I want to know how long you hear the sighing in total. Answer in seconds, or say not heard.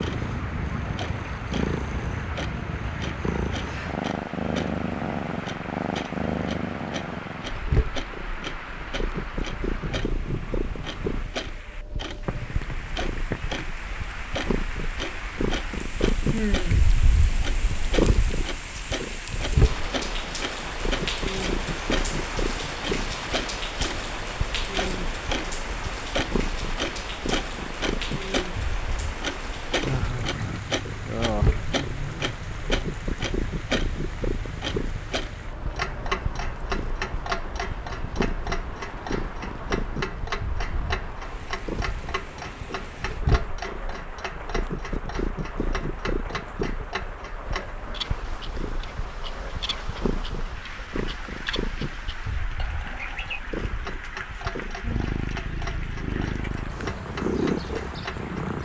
3 s.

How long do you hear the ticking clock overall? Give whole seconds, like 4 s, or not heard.
58 s.